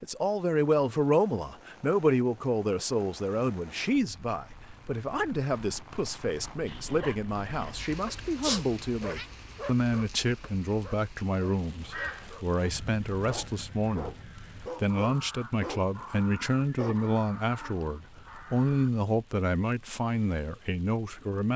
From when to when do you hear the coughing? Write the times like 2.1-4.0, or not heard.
not heard.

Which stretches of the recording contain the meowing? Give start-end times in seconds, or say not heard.
8.4-9.2.